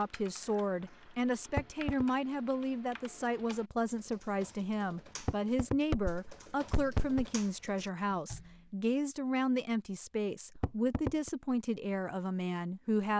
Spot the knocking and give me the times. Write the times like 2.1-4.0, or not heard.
1.6-2.0, 5.2-7.2, 10.6-11.3.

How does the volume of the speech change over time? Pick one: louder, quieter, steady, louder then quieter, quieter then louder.
steady.